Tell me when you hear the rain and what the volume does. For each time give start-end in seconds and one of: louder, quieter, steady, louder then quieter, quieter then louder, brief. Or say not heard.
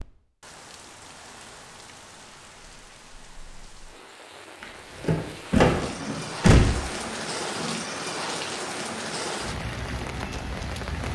0.0-11.0 louder.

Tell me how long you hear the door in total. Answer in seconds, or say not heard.
2 s.